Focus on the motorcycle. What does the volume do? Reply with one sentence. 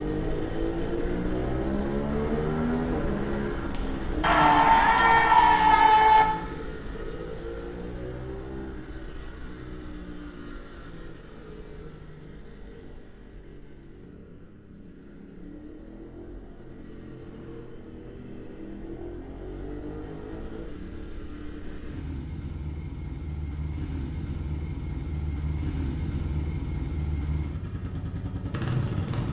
The loudness of the motorcycle goes down, then up.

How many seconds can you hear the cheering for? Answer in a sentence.
The cheering can be heard for 2 seconds in total.